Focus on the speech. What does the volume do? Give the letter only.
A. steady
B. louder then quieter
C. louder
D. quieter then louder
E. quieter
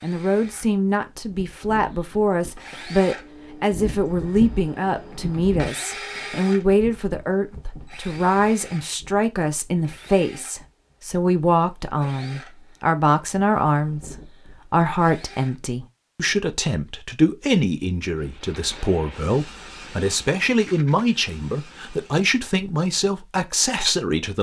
A.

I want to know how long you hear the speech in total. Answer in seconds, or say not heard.
24 s.